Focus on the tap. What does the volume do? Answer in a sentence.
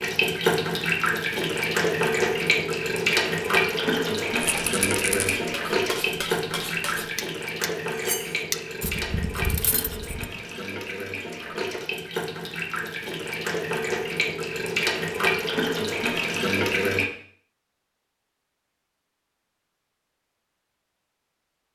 The loudness of the tap goes down, then up.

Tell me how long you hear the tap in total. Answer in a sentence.
You can hear the tap for 17 seconds altogether.